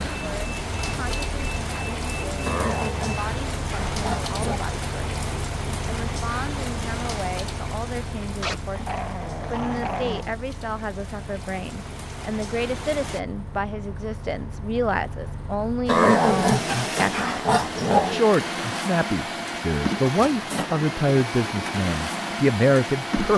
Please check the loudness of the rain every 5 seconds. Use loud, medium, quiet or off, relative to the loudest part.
loud, loud, medium, off, off.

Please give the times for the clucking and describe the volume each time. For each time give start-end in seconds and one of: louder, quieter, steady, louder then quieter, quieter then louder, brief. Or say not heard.
not heard.